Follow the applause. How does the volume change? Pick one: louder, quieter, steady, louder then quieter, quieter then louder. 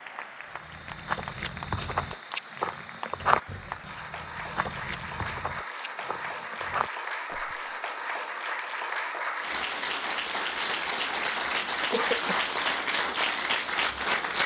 louder.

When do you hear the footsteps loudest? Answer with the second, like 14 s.
3 s.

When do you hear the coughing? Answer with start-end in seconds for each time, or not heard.
11.9-12.5.